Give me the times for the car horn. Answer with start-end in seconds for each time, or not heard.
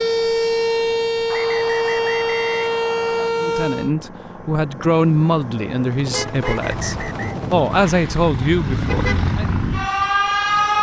6.1-6.7.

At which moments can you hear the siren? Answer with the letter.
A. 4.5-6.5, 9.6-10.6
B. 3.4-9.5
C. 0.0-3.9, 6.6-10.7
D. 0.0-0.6
C.